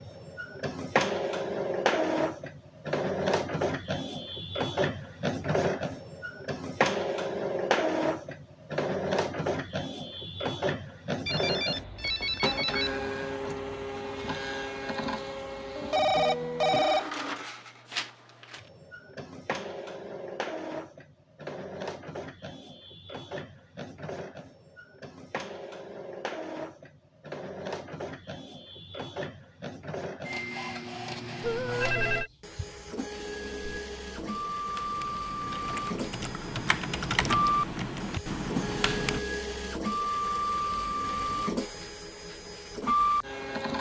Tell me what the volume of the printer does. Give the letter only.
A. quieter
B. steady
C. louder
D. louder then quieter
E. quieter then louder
E.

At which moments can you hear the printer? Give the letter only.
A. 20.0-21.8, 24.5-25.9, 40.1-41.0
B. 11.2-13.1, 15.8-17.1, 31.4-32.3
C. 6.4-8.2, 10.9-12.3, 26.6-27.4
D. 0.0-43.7
D.